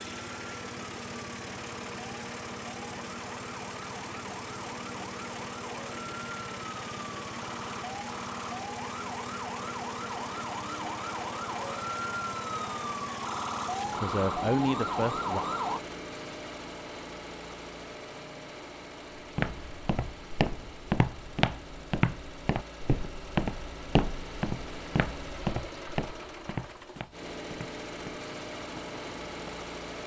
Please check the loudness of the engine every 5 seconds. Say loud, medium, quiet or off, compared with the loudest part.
loud, loud, loud, loud, medium, loud.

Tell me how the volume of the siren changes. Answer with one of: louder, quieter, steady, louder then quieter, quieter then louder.
louder.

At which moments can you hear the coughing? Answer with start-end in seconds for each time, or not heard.
not heard.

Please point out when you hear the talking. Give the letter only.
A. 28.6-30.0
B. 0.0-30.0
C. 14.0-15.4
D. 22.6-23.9
C.